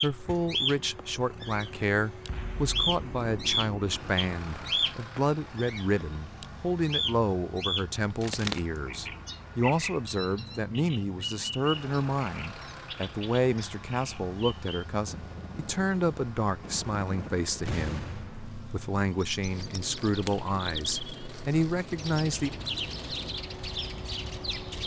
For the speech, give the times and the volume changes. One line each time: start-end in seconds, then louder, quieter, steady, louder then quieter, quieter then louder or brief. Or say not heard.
0.0-22.5 steady.